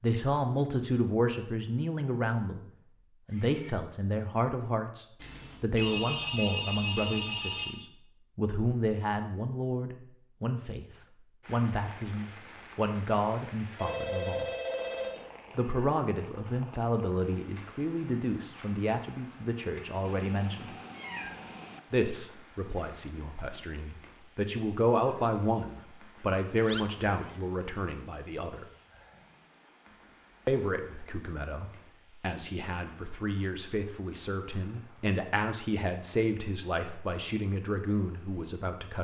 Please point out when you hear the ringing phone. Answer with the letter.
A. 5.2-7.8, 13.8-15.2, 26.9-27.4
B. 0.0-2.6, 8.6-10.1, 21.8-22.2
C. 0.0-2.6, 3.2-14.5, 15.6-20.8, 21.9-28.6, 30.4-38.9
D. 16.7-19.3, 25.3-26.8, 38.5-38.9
A.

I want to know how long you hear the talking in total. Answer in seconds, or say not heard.
34 s.